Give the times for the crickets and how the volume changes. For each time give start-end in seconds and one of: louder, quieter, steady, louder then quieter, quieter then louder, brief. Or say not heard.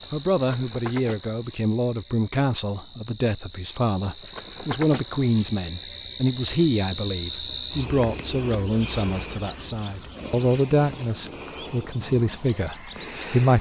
0.0-13.5 louder.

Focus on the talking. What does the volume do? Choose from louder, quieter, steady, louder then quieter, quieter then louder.
steady.